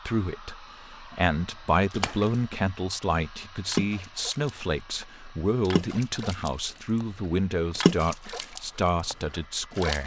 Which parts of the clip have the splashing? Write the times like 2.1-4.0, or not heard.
1.9-2.5, 3.6-5.0, 5.7-7.0, 7.8-10.0.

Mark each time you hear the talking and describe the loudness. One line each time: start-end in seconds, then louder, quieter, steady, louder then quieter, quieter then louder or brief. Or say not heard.
0.1-10.0 steady.